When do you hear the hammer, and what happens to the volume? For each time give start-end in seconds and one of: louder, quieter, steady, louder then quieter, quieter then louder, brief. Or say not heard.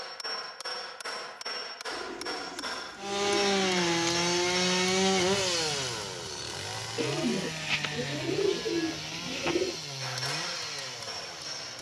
0.0-4.8 steady
10.0-11.7 brief.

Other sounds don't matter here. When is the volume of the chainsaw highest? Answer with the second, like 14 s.
5 s.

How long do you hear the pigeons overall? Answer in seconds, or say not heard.
5 s.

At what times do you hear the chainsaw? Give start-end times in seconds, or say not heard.
3.0-11.7.